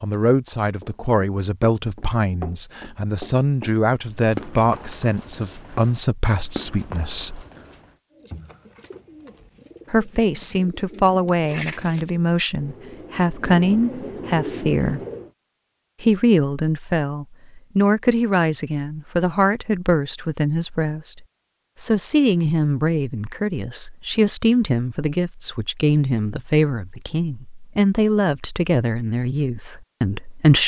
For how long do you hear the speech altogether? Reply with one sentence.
The speech can be heard for 27 seconds in total.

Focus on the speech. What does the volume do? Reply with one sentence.
The loudness of the speech stays about the same.